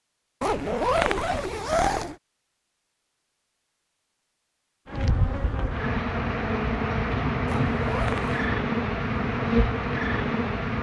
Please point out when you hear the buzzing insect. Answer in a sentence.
The buzzing insect can be heard from 4.8 to 10.7 s.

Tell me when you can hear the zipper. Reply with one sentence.
The zipper can be heard from 0.4 to 2.1 s and from 7.5 to 8.4 s.